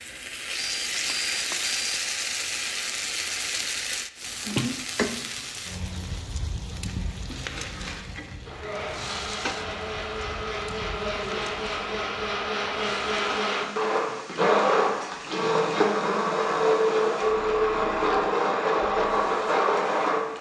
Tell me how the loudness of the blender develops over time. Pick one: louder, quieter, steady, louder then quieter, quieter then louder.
louder.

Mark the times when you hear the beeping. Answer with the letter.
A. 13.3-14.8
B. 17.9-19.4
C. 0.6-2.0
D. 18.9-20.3
C.